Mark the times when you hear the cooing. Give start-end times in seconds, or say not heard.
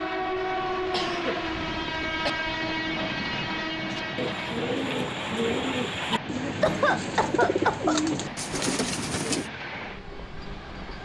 3.9-9.5.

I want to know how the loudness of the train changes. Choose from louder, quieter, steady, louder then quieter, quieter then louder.
quieter.